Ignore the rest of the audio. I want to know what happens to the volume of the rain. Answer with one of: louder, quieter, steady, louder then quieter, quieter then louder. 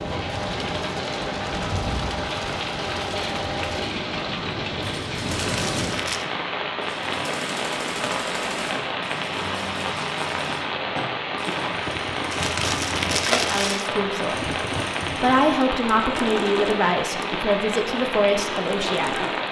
steady.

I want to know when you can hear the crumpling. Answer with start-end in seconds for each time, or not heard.
5.4-6.2, 12.3-13.9.